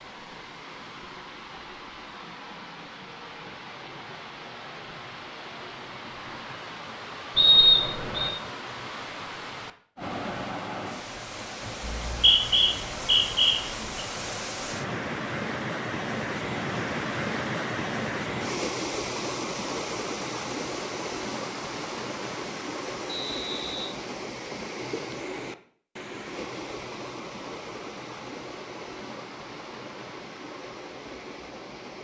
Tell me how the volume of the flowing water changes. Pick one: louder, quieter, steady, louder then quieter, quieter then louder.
louder then quieter.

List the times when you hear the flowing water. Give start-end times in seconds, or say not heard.
0.0-31.9.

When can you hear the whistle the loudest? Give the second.
8 s.